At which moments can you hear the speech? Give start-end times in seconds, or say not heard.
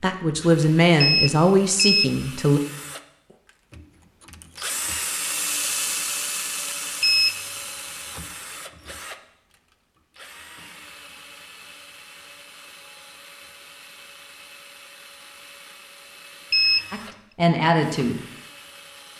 0.0-2.6, 16.9-18.2.